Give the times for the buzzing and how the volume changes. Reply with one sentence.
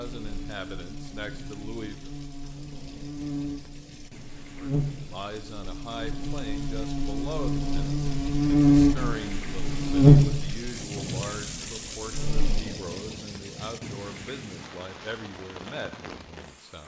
You can hear the buzzing from 0.0 to 12.6 s, getting louder.